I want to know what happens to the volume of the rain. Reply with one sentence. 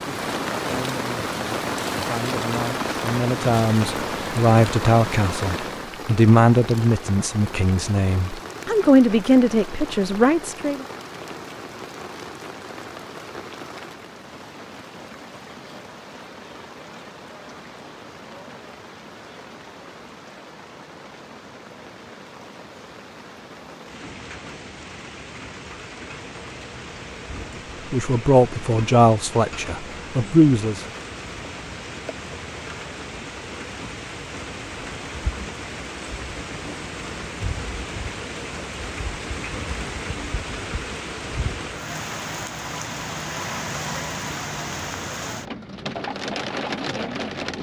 The loudness of the rain goes down, then up.